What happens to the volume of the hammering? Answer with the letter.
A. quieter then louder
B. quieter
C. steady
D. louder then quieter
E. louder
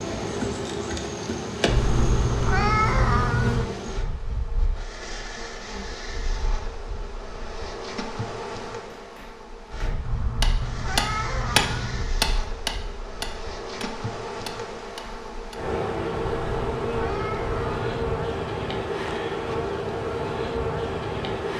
D.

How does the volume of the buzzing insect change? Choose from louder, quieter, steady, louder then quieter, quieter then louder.
quieter then louder.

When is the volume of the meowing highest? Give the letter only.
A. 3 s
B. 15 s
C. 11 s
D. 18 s
A.